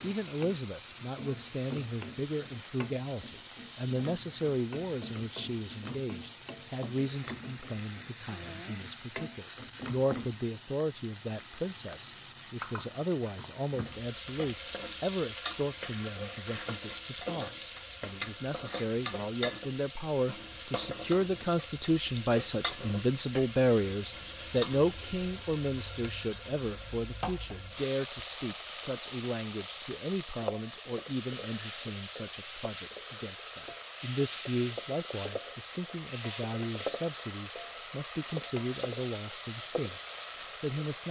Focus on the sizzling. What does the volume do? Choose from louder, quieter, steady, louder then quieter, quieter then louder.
steady.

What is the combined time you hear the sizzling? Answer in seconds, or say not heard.
41 s.